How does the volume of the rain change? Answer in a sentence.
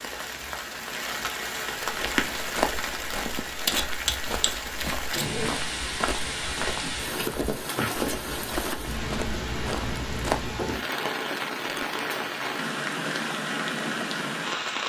The loudness of the rain stays about the same.